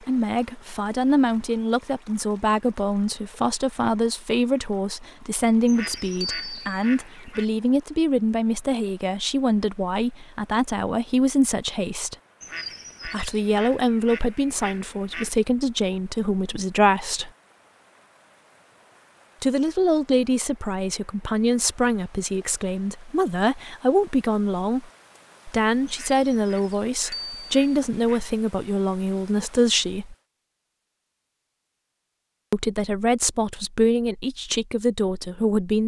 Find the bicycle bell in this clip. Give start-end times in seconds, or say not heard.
6.2-6.8, 27.1-27.8.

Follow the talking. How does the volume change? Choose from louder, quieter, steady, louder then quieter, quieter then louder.
steady.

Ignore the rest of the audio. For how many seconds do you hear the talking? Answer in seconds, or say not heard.
30 s.